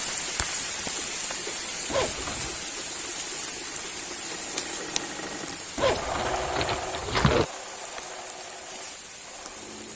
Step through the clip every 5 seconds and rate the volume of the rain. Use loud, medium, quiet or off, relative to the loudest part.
loud, medium.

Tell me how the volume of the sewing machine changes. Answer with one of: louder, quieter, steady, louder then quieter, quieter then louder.
louder then quieter.